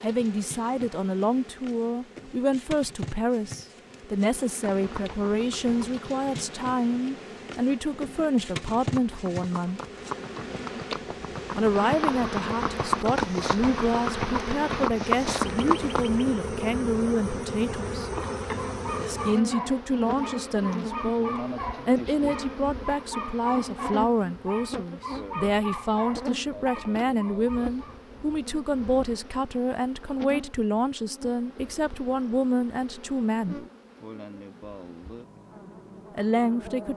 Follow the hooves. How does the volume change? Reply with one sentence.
The volume of the hooves goes up.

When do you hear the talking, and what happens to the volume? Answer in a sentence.
You can hear the talking from 0.0 to 9.8 s, at a steady volume; from 11.6 to 18.1 s, at a steady volume; from 18.9 to 33.6 s, at a steady volume; and briefly from 36.1 to 36.9 s.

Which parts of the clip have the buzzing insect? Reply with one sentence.
You can hear the buzzing insect from 0.0 to 36.9 s.